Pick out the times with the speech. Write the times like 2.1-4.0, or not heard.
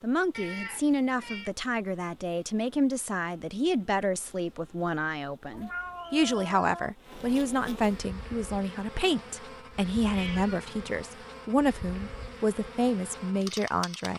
0.0-14.1.